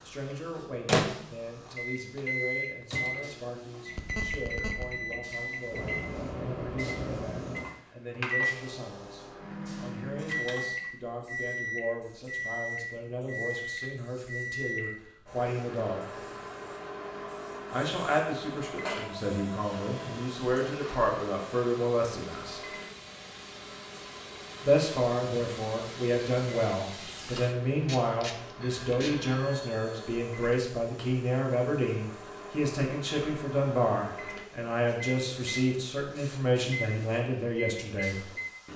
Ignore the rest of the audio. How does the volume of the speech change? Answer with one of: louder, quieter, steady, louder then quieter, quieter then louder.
louder.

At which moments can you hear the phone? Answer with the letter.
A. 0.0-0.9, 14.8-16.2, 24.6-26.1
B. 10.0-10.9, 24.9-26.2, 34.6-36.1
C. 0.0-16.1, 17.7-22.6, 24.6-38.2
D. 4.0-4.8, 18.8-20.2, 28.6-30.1
D.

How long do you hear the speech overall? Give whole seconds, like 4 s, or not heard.
35 s.